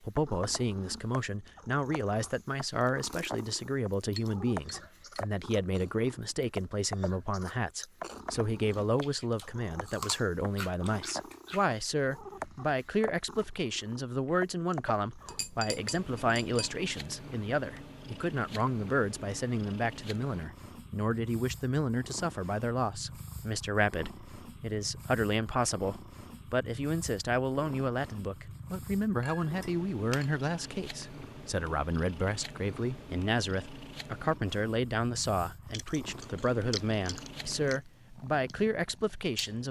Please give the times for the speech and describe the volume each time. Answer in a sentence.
You can hear the speech from 0.0 to 39.6 s, at a steady volume.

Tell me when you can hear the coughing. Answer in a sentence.
You can't hear the coughing here.